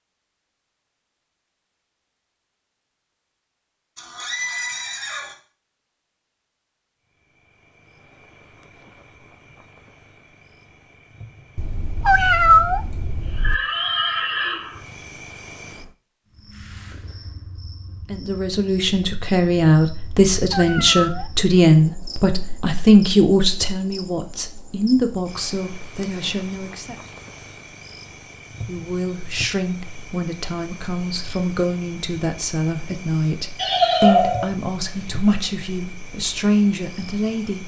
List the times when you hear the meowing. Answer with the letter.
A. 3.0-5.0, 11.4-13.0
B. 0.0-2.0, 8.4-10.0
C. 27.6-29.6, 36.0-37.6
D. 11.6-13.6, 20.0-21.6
D.